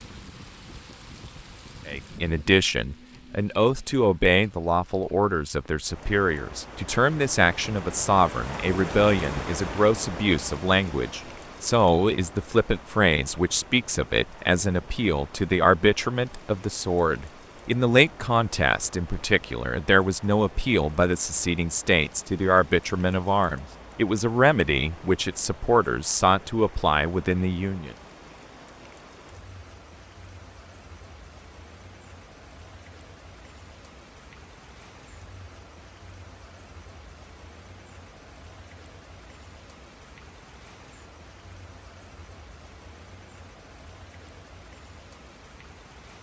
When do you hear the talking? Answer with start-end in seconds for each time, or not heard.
1.9-27.9.